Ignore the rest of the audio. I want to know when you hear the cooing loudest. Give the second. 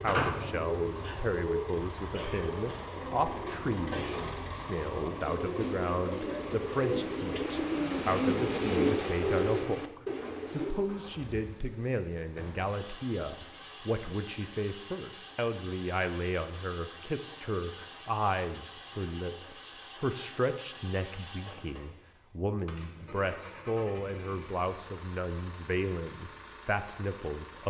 9 s.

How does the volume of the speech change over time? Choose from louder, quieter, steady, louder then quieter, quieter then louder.
steady.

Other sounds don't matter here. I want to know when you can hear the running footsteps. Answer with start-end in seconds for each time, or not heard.
not heard.